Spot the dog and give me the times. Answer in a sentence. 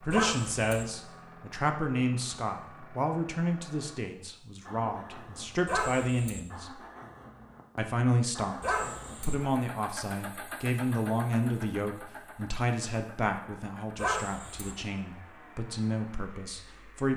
The dog can be heard from 0.1 to 0.8 s, from 5.7 to 6.4 s, from 8.6 to 9.3 s and from 13.9 to 14.8 s.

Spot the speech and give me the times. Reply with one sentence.
The speech can be heard from 0.0 to 6.8 s and from 7.8 to 17.1 s.